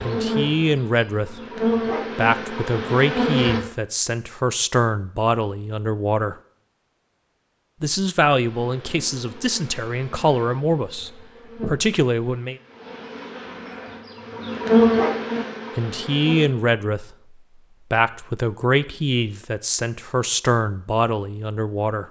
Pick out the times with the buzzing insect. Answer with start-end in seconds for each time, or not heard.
0.0-3.6, 8.4-16.5.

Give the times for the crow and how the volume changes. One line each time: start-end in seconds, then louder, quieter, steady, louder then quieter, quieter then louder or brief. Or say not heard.
not heard.